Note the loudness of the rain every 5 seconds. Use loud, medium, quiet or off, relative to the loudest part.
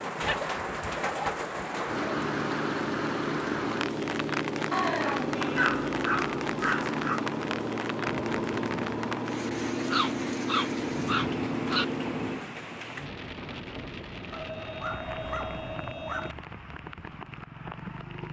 loud, loud, medium, medium.